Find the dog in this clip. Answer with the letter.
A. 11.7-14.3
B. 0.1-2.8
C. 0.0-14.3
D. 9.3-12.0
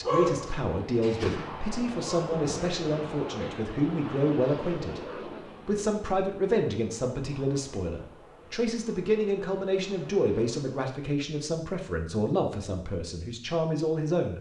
B.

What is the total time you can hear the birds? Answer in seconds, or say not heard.
not heard.